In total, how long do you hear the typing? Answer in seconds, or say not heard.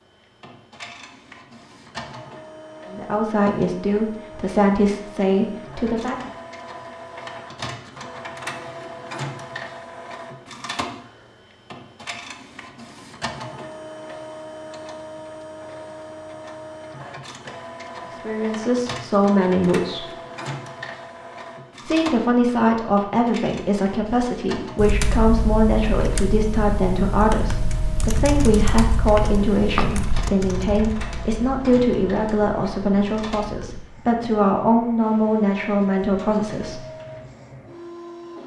9 s.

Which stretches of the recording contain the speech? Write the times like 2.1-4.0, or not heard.
2.9-6.3, 18.1-20.1, 21.9-36.9.